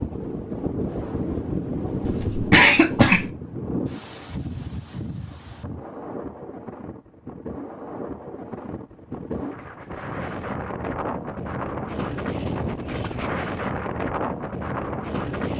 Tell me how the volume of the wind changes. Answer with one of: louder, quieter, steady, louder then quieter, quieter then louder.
quieter then louder.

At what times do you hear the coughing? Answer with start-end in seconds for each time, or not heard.
2.0-3.3.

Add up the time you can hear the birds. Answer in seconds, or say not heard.
not heard.